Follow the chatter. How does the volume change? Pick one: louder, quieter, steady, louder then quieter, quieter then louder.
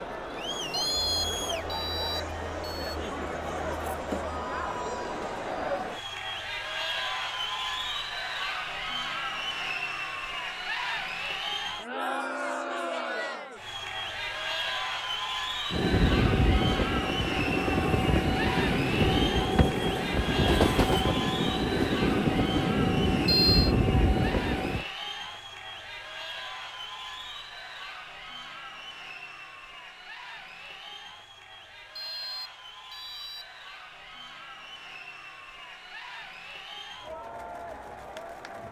quieter.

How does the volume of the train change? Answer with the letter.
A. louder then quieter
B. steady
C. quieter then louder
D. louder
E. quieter
B.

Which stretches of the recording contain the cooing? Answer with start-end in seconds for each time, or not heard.
not heard.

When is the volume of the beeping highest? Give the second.
23 s.